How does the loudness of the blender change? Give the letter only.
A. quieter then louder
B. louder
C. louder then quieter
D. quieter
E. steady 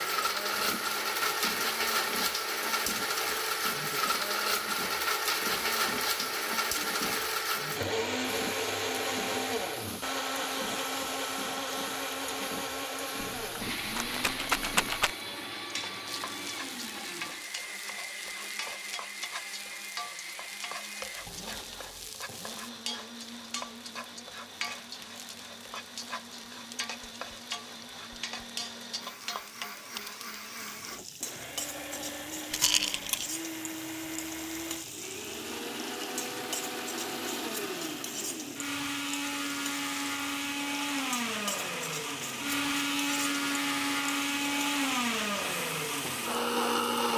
A.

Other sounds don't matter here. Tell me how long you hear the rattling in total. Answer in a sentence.
You can hear the rattling for 3 seconds altogether.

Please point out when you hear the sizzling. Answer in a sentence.
The sizzling can be heard from 0.0 to 47.1 s.